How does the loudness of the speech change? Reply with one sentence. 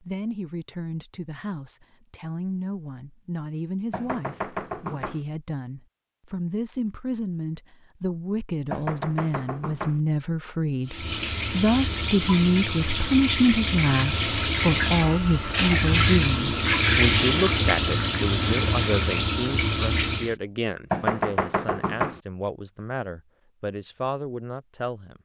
The volume of the speech goes up, then down.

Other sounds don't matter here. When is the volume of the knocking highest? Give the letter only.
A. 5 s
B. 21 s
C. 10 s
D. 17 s
B.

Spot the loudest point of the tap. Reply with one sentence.
The loudest moment of the tap is at 17 seconds.